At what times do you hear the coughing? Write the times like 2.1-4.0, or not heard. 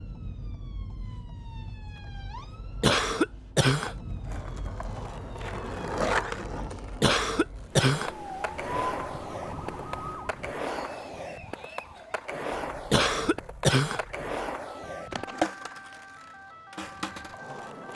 2.8-4.0, 7.0-8.1, 12.9-14.0.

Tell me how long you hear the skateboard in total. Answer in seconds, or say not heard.
14 s.